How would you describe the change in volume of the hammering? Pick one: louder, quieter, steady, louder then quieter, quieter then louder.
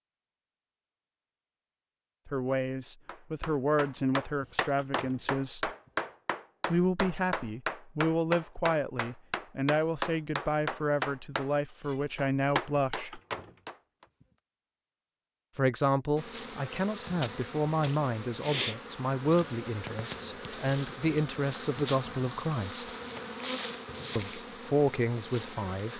steady.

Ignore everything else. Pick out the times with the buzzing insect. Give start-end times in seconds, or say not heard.
16.1-25.9.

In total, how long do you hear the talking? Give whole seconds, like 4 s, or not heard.
19 s.